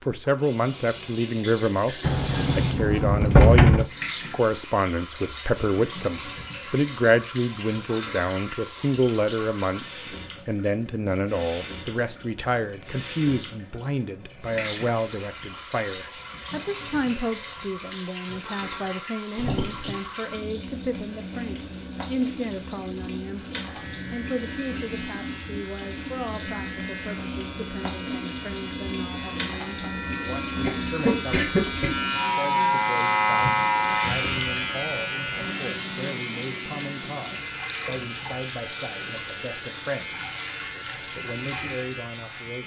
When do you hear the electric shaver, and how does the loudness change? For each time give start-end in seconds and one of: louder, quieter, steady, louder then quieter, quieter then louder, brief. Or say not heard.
23.6-42.6 louder then quieter.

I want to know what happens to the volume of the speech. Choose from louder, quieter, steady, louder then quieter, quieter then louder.
quieter.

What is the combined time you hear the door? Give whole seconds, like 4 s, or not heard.
2 s.